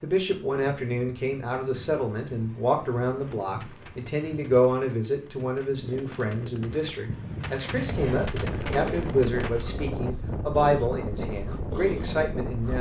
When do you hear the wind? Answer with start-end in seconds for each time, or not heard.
0.0-12.7.